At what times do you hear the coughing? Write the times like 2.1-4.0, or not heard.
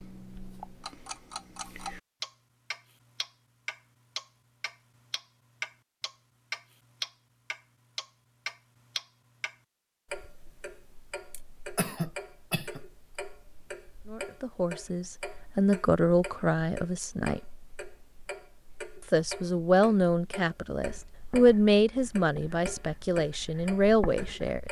11.3-12.8.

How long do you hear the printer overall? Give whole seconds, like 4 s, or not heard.
not heard.